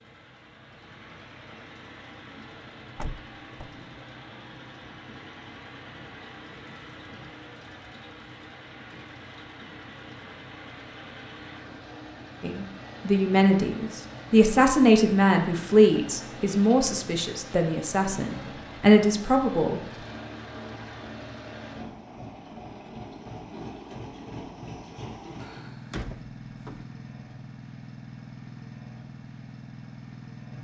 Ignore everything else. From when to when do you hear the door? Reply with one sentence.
The door can be heard from 3.0 to 3.8 s and from 25.4 to 26.9 s.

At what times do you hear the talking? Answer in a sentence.
You can hear the talking from 12.4 to 19.8 s.